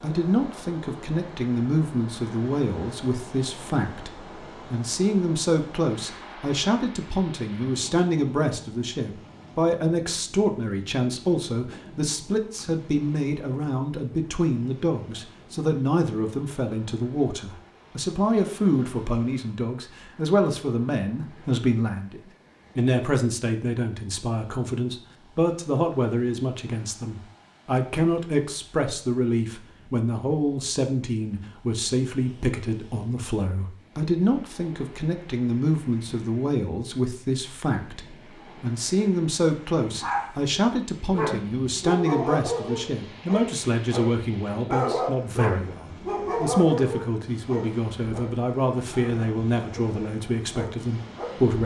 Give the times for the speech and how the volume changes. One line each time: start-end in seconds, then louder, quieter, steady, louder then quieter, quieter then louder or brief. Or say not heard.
0.0-51.6 steady.